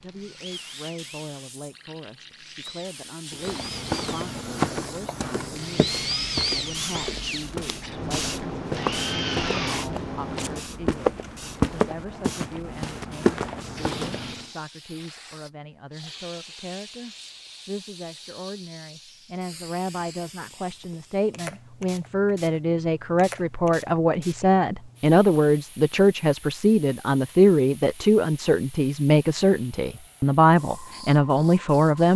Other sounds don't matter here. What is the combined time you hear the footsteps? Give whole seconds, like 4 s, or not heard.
11 s.